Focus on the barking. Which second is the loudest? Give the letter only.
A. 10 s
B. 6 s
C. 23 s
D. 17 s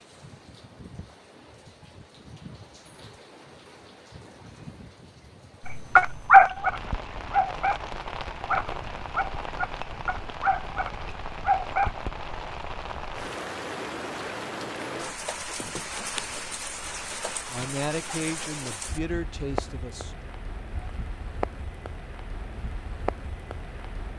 B.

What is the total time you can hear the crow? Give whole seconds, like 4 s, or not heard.
not heard.